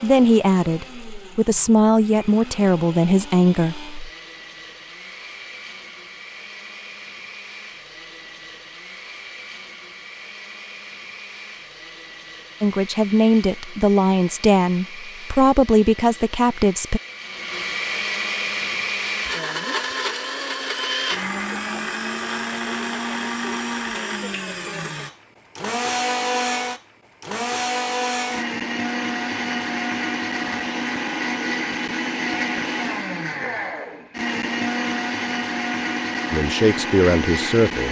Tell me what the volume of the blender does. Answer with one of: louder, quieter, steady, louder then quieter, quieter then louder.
louder.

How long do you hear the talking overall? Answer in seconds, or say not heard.
10 s.